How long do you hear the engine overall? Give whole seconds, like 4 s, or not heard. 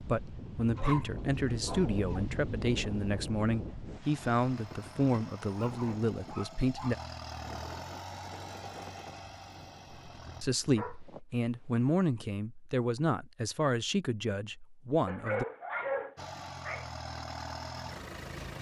9 s.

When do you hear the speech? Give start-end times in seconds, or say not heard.
0.0-7.0, 10.4-15.4.